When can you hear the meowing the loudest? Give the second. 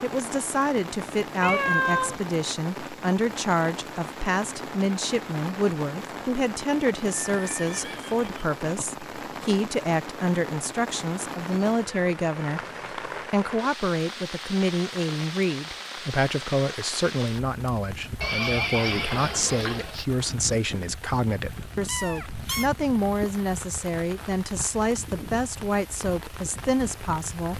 2 s.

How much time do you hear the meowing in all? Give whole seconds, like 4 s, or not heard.
3 s.